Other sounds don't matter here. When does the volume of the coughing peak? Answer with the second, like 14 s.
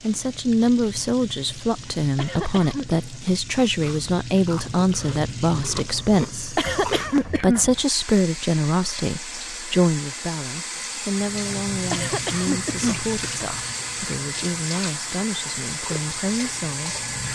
7 s.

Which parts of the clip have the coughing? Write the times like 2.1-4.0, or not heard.
2.1-3.0, 6.5-7.6, 11.9-13.4.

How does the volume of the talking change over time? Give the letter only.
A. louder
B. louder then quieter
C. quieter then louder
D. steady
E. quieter
E.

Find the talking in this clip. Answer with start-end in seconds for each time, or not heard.
0.0-17.1.